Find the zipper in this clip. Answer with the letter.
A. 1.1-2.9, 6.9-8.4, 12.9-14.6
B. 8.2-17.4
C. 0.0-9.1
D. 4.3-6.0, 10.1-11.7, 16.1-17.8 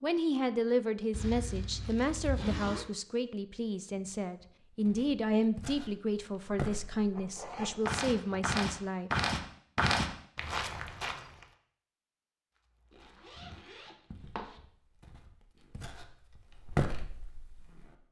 A.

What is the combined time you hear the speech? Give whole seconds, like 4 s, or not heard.
9 s.